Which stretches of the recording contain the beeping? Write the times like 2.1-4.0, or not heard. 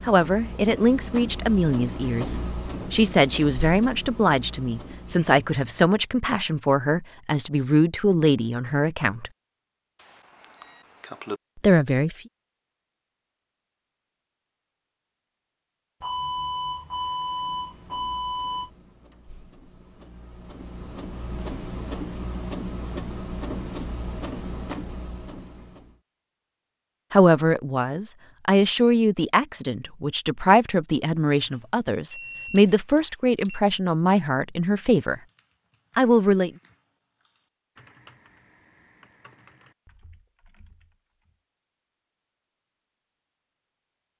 10.0-11.4, 16.0-18.7, 31.4-33.6.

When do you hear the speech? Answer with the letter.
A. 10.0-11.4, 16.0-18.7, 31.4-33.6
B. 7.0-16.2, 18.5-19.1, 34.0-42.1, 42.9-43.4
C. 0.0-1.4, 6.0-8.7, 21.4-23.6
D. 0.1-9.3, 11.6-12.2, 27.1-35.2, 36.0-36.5
D.